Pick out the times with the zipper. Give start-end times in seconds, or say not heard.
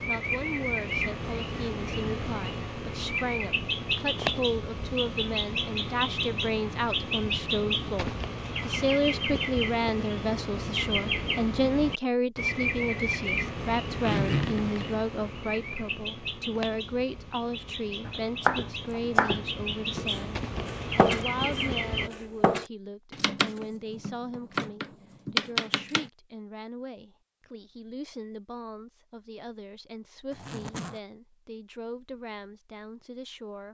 14.1-15.0, 30.3-31.0.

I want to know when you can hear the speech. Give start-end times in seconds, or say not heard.
0.1-33.6.